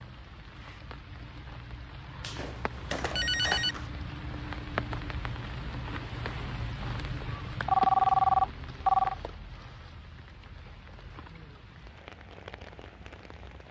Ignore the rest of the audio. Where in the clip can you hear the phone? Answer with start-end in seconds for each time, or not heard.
2.2-3.9, 7.7-9.2.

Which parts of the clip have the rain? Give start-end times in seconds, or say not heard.
0.0-13.6.